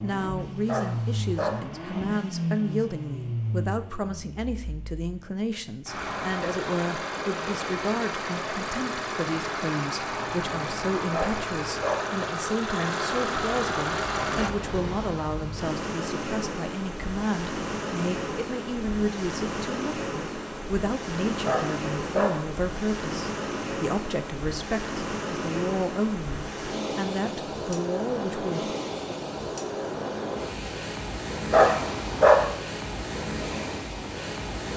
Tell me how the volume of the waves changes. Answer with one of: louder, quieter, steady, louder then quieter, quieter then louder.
steady.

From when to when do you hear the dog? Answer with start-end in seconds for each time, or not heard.
0.7-1.6, 11.1-12.1, 21.4-22.4, 31.5-32.5.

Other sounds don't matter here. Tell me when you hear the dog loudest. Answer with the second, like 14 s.
32 s.